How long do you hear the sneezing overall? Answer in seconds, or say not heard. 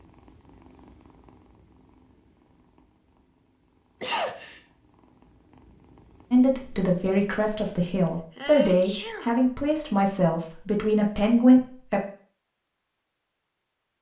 2 s.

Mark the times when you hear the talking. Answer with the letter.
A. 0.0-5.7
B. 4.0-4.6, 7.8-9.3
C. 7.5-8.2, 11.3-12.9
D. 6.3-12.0
D.